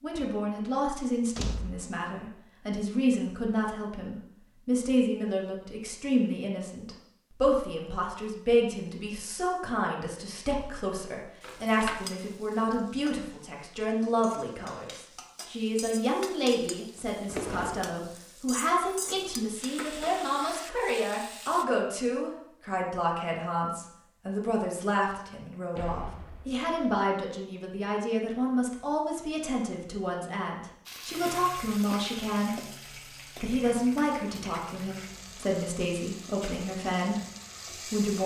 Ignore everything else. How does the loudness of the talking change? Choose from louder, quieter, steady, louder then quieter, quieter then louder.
steady.